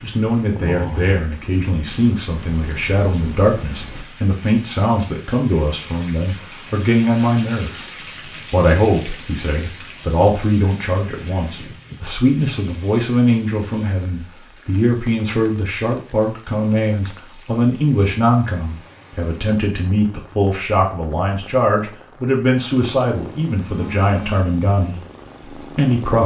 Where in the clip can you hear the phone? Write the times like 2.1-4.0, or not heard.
23.6-24.4.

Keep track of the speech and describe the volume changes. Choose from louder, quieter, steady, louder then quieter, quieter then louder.
steady.